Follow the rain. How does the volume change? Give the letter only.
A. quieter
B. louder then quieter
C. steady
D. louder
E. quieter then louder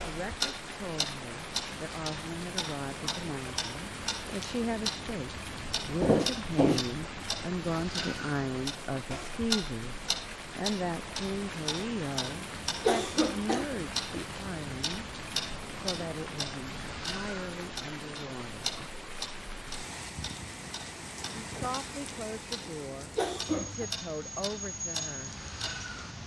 C.